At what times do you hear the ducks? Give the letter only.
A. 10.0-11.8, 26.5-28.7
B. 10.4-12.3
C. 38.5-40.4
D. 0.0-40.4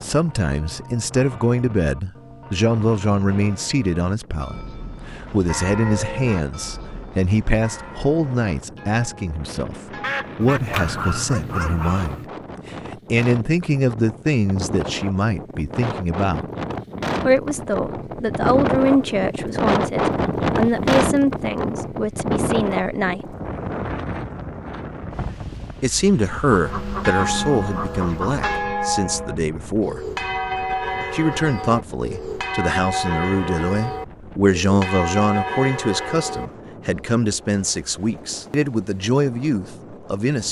A.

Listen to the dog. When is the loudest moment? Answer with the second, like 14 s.
11 s.